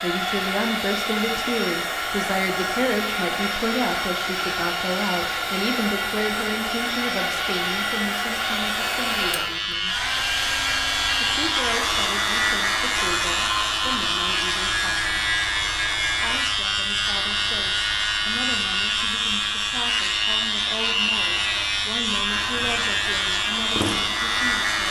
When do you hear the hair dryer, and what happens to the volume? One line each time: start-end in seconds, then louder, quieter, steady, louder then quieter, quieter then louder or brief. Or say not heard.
0.0-24.8 quieter.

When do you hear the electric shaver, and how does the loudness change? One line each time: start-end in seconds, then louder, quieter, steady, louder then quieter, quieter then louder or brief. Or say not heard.
0.1-24.8 louder.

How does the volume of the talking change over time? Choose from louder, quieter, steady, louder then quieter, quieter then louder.
quieter.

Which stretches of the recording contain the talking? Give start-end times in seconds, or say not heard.
0.0-9.9, 11.2-15.4, 16.1-24.8.